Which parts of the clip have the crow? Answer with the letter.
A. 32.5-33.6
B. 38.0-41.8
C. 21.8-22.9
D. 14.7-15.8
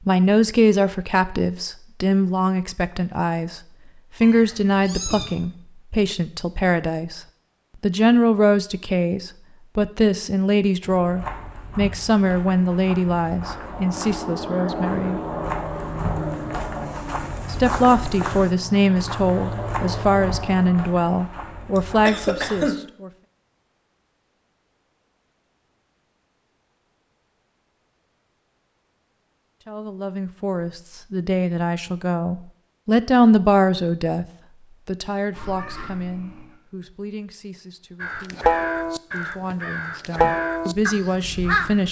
B.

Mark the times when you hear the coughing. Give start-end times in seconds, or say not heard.
21.8-22.9.